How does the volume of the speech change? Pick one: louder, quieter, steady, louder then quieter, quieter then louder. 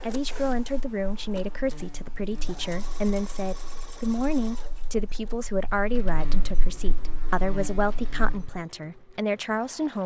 steady.